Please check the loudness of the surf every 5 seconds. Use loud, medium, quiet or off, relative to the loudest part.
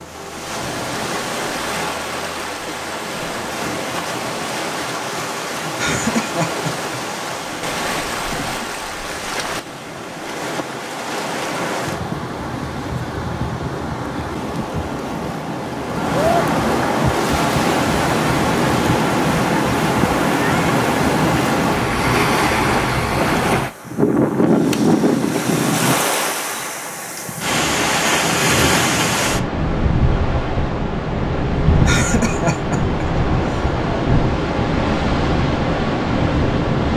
medium, medium, medium, loud, loud, loud, loud, loud.